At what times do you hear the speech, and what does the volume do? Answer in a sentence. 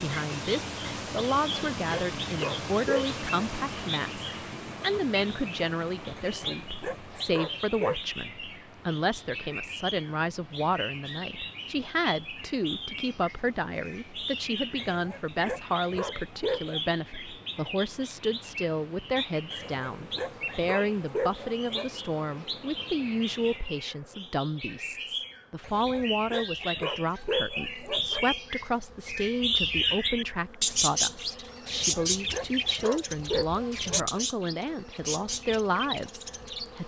The speech can be heard from 0.0 to 36.8 s, at a steady volume.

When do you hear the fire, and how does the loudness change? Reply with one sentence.
You can't hear the fire here.